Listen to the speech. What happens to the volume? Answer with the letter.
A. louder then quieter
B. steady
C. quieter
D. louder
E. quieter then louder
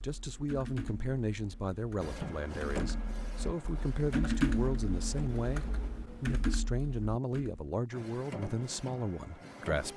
B.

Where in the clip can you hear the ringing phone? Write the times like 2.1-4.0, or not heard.
not heard.